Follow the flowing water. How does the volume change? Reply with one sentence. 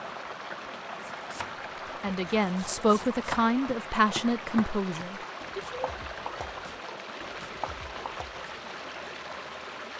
The loudness of the flowing water stays about the same.